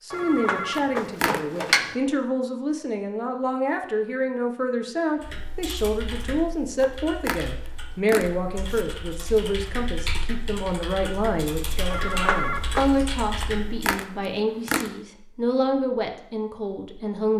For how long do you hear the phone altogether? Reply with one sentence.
The phone can be heard for 3 seconds in total.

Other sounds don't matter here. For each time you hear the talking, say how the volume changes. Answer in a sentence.
The talking can be heard from 0.0 to 17.3 s, at a steady volume.